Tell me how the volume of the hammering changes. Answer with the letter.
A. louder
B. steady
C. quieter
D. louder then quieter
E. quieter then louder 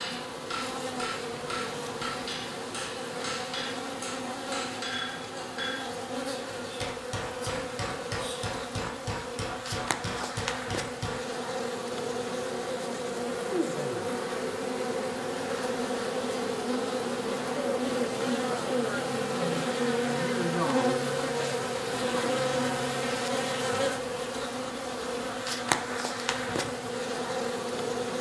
B.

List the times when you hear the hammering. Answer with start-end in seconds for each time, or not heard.
0.0-11.2.